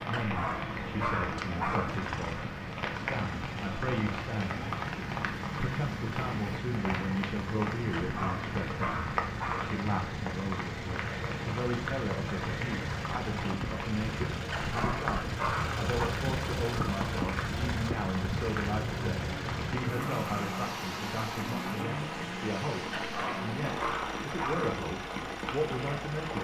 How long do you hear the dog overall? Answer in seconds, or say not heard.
7 s.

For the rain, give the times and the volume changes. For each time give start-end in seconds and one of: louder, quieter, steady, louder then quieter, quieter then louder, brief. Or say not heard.
0.0-26.3 steady.